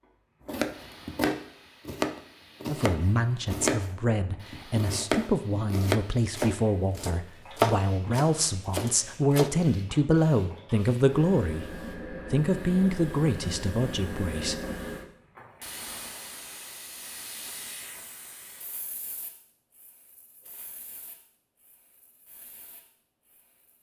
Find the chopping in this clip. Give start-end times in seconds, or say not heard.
0.5-9.5.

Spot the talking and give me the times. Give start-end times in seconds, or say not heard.
2.6-14.6.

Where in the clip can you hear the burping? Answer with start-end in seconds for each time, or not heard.
not heard.